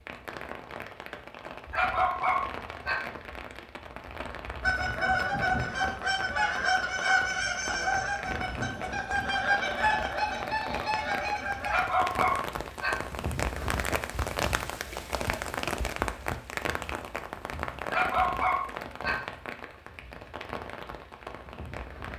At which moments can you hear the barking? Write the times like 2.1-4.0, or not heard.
1.7-3.0, 11.7-13.0, 17.9-19.2.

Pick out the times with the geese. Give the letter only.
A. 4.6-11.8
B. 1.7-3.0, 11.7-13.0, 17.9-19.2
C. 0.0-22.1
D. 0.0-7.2
A.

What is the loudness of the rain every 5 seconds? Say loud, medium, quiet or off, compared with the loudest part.
medium, medium, loud, loud, medium.